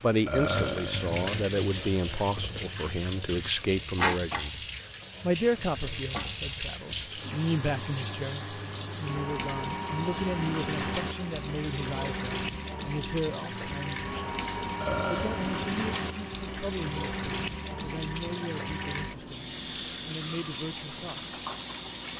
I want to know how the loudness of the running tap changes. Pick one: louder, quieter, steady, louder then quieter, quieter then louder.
steady.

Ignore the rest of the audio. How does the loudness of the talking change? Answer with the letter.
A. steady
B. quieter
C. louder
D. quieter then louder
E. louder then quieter
B.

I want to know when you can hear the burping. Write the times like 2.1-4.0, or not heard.
0.2-1.2, 14.8-15.7.